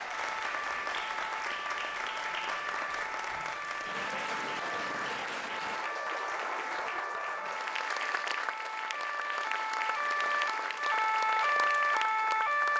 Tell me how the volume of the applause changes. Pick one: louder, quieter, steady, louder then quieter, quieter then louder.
steady.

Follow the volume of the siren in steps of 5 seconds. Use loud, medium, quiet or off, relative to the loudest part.
medium, medium, loud.